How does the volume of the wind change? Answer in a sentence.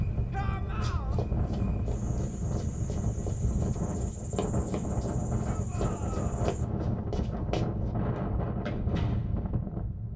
The volume of the wind stays about the same.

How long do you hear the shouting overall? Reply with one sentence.
You can hear the shouting for 2 seconds altogether.